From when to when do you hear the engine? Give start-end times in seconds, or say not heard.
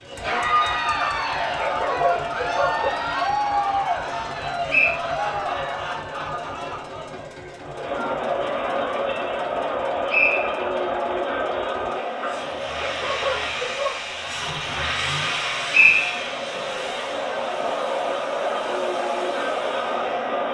0.0-20.4.